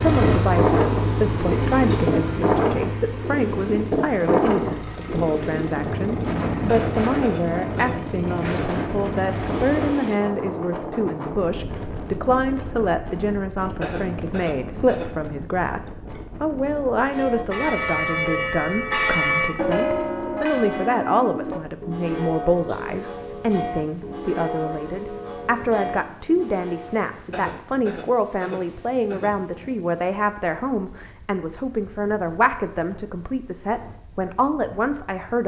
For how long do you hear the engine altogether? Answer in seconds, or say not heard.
10 s.